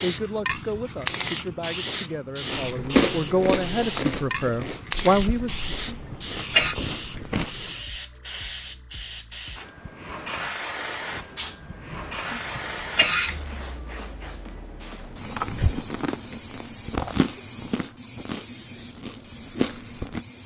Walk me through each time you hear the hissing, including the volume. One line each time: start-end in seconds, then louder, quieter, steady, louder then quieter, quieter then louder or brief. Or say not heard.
0.0-20.4 quieter.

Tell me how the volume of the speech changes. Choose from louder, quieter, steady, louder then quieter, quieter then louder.
louder.